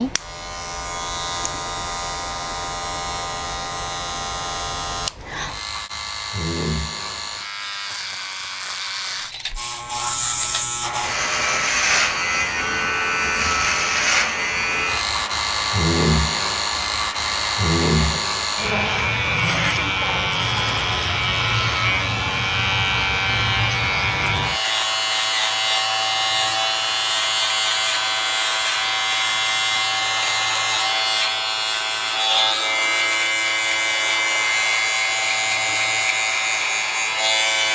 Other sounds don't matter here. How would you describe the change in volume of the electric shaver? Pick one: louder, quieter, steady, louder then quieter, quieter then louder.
louder.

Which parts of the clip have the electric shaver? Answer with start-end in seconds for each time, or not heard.
0.0-37.7.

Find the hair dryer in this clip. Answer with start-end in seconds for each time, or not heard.
10.8-37.6.